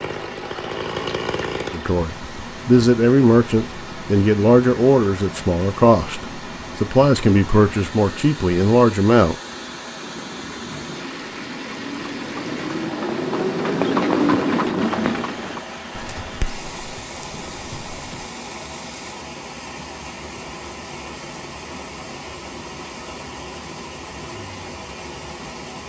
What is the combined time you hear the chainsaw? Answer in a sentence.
You can hear the chainsaw for 2 seconds altogether.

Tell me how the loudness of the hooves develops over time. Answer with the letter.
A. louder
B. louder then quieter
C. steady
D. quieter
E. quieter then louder
B.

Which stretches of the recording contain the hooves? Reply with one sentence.
The hooves can be heard from 9.9 to 18.3 s.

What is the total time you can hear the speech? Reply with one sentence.
You can hear the speech for 8 seconds altogether.